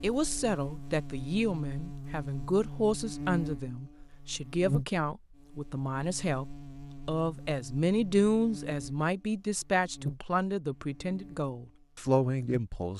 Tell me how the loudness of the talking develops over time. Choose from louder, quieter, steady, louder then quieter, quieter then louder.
steady.